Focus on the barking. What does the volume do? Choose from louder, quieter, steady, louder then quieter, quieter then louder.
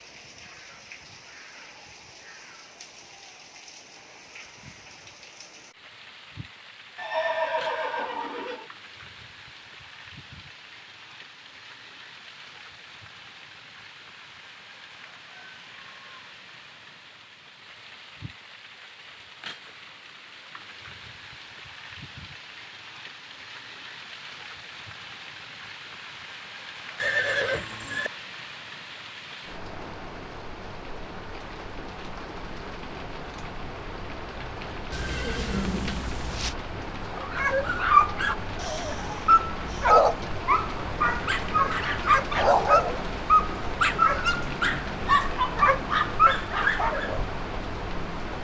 steady.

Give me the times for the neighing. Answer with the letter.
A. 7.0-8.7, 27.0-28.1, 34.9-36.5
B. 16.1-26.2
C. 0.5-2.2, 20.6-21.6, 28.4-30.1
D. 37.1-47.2
A.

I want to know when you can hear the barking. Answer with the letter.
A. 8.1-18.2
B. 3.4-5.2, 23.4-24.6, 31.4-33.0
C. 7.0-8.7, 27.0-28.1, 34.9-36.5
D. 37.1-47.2
D.